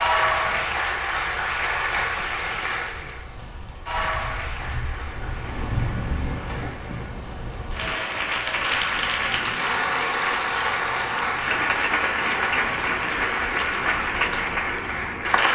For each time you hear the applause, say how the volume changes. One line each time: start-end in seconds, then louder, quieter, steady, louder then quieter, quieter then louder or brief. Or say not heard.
0.0-15.4 quieter then louder.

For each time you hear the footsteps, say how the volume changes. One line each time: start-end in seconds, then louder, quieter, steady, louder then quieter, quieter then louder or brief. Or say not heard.
not heard.